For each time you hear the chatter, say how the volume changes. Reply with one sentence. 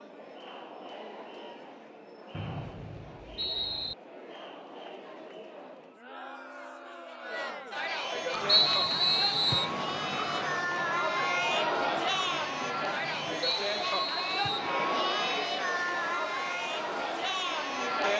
You can hear the chatter from 0.0 to 18.1 s, getting louder.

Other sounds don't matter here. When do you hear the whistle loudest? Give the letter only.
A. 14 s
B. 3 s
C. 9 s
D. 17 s
C.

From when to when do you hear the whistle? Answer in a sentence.
The whistle can be heard from 2.3 to 4.0 s, from 8.4 to 9.7 s and from 13.4 to 14.7 s.